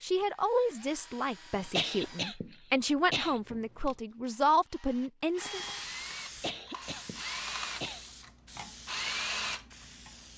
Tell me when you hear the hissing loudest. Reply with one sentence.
The volume of the hissing peaks at 6 seconds.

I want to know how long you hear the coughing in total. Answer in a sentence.
You can hear the coughing for 3 seconds altogether.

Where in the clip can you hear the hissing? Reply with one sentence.
You can hear the hissing from 5.5 to 10.3 s.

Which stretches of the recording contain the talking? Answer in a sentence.
You can hear the talking from 0.0 to 5.6 s.